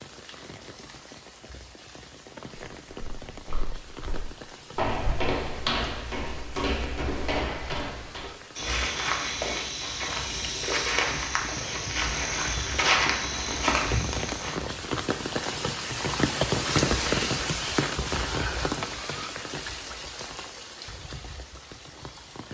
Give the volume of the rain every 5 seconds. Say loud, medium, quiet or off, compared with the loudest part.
quiet, quiet, medium, loud, quiet.